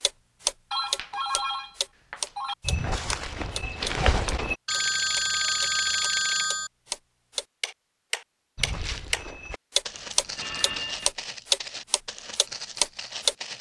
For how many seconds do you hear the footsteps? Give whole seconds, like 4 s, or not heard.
7 s.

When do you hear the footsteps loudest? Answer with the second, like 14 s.
4 s.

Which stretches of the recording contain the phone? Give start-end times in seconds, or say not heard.
0.7-2.5, 4.7-6.7, 9.9-11.1.